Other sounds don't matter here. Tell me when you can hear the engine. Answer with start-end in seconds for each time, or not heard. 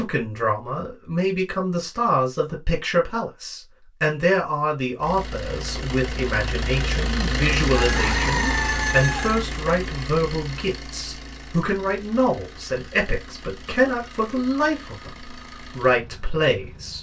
5.0-16.9.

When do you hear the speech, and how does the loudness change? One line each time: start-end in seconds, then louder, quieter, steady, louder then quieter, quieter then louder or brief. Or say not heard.
0.0-16.9 steady.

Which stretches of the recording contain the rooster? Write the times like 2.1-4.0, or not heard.
7.7-9.4.